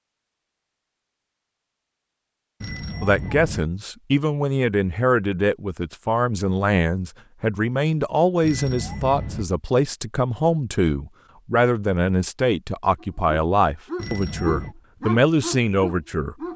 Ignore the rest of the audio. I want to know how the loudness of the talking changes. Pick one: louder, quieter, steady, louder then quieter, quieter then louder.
steady.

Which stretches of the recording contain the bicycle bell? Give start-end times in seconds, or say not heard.
2.6-3.6, 8.4-9.4, 13.9-14.8.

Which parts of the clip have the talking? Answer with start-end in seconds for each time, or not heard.
3.0-16.4.